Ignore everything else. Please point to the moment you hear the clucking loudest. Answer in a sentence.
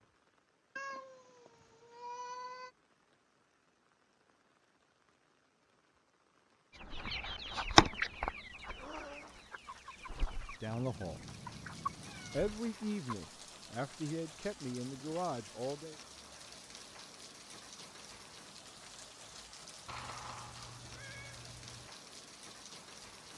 The loudest moment of the clucking is at 8 seconds.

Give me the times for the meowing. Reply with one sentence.
You can hear the meowing from 0.8 to 2.7 s, from 10.7 to 12.6 s and from 19.9 to 21.9 s.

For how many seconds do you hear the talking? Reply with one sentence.
You can hear the talking for 4 seconds altogether.